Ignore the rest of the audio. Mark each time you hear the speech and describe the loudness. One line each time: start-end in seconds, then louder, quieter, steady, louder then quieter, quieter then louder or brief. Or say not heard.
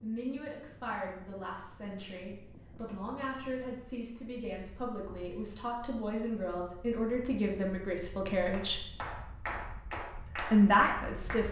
0.0-8.8 louder
10.3-11.4 brief.